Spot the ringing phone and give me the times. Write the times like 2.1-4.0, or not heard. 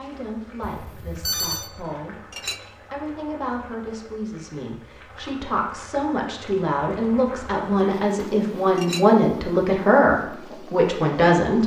0.6-1.7.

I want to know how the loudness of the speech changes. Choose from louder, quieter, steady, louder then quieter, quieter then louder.
louder.